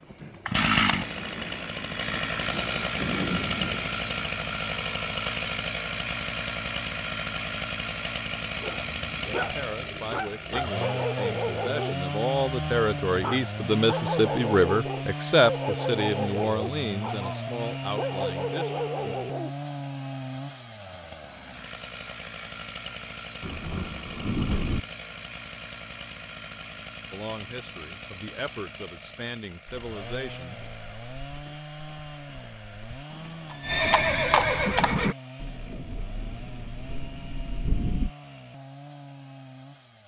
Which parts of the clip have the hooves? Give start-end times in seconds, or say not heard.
29.6-35.1.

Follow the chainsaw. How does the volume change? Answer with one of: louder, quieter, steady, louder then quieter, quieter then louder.
quieter.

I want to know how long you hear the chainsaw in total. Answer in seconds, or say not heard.
40 s.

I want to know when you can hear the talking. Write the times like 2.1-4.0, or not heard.
9.3-18.9, 27.1-30.6.